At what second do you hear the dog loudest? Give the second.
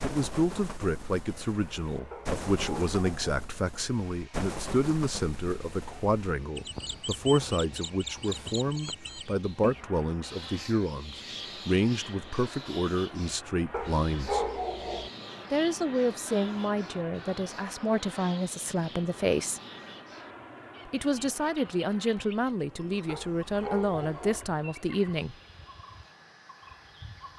14 s.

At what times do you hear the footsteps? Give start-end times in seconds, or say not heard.
not heard.